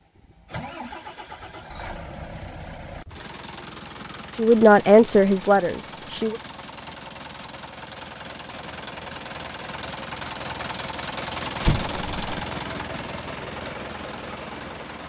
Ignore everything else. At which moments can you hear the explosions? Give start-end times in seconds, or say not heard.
11.6-12.3.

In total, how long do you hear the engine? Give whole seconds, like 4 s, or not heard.
15 s.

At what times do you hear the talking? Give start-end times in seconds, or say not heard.
4.3-6.4.